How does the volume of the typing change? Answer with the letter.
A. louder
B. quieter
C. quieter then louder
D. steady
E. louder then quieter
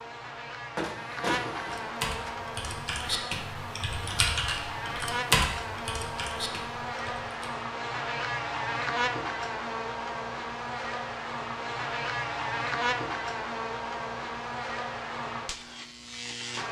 E.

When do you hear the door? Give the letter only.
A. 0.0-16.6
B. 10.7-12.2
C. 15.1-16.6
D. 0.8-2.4
D.